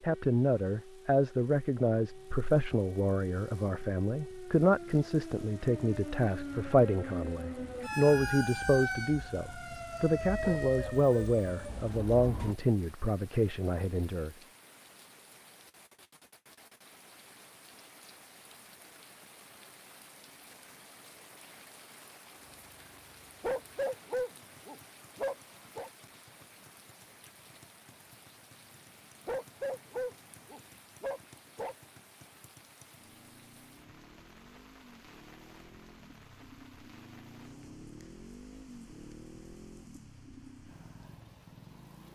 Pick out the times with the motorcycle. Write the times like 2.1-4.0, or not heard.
22.5-42.1.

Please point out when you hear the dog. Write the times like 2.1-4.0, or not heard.
10.4-11.8, 23.4-25.9, 29.2-31.8.